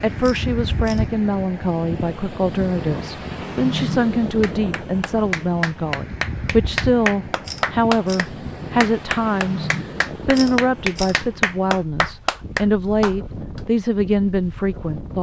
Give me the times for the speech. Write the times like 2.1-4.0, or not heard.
0.0-15.1.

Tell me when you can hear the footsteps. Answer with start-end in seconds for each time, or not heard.
not heard.